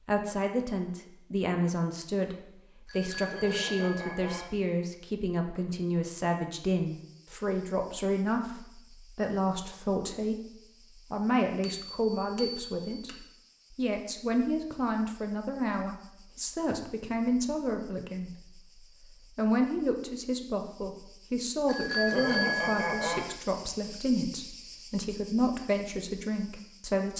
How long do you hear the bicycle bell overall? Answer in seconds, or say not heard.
5 s.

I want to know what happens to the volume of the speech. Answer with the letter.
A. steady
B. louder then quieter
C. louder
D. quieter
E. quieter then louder
A.